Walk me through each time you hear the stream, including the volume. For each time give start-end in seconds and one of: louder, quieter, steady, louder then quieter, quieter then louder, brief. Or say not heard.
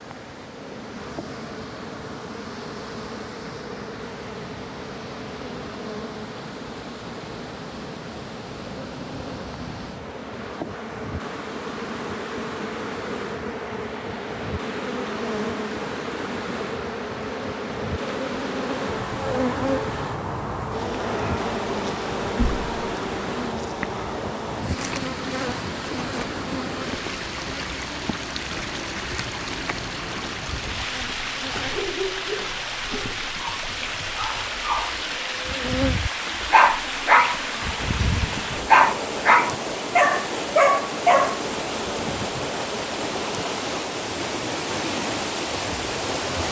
0.0-46.4 louder.